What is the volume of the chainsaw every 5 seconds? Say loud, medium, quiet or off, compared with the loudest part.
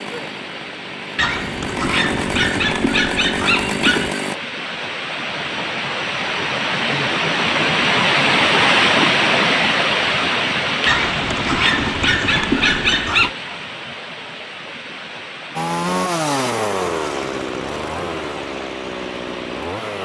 loud, off, off, loud.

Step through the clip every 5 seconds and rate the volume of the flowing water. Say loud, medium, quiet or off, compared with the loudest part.
quiet, loud, medium, quiet.